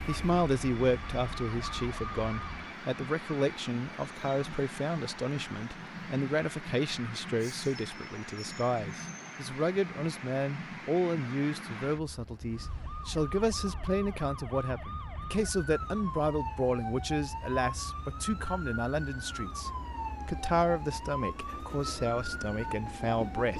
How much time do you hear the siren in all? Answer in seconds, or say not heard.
14 s.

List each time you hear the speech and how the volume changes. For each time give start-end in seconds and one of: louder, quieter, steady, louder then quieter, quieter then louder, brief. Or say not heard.
0.1-23.5 steady.